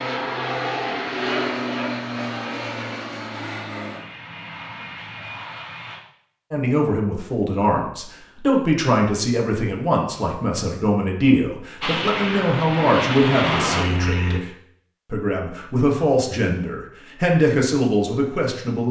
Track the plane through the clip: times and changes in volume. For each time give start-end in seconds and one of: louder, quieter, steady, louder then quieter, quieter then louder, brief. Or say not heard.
0.0-6.0 quieter
11.8-14.4 brief.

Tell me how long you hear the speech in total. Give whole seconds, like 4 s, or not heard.
12 s.